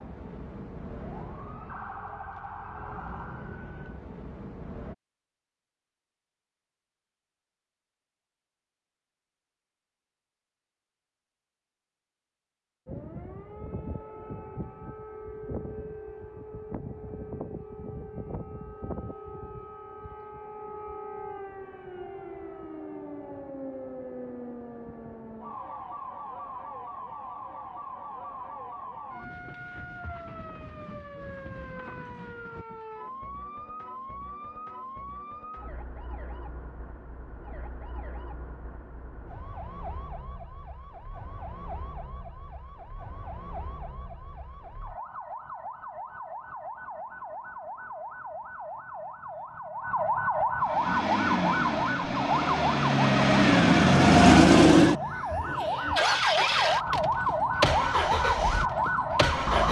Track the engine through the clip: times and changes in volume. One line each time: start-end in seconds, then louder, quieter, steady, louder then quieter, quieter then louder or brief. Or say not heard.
50.6-59.6 louder then quieter.